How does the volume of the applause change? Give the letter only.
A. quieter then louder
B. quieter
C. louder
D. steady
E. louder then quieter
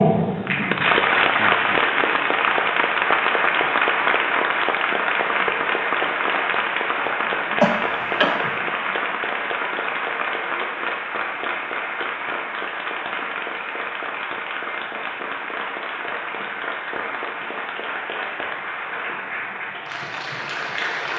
B.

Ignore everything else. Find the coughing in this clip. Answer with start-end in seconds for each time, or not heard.
7.6-8.6.